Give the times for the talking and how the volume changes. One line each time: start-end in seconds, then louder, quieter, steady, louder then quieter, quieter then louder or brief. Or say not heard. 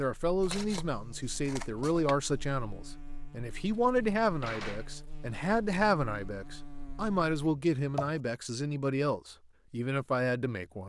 0.0-10.8 steady.